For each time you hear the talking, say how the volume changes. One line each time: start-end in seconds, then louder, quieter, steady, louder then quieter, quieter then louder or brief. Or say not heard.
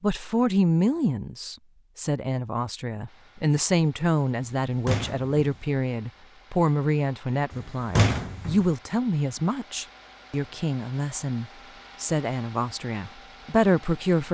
0.0-14.3 steady.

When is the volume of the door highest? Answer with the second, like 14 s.
8 s.